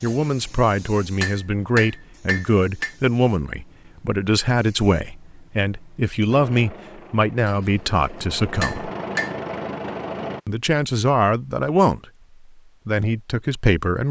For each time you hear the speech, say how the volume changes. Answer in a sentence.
You can hear the speech from 0.0 to 8.9 s, at a steady volume; briefly from 10.4 to 12.0 s; and briefly from 12.8 to 14.0 s.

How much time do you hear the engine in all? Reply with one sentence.
You can hear the engine for 4 seconds altogether.